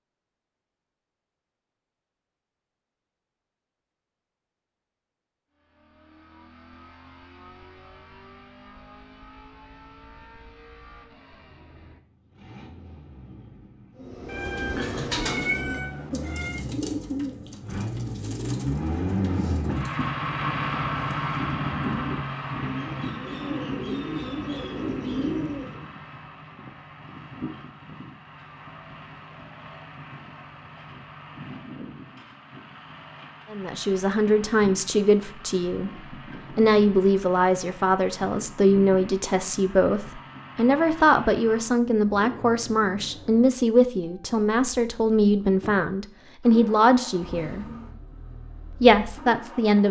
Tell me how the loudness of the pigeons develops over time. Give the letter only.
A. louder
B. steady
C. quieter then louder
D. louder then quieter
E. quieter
C.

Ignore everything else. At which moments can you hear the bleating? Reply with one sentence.
The bleating can't be heard in this clip.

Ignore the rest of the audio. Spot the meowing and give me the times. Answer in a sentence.
You can hear the meowing from 14.2 to 16.6 s.